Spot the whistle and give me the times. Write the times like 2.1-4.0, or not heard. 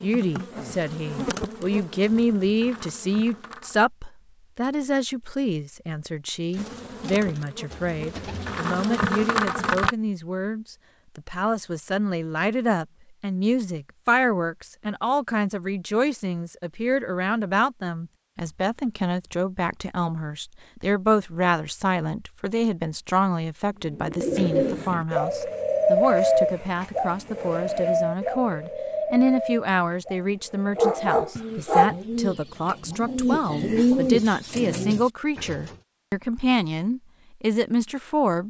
not heard.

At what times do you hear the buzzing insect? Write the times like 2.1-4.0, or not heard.
0.0-3.8, 6.5-9.9.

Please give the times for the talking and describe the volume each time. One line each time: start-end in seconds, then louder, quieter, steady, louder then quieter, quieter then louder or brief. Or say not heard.
0.0-38.4 steady.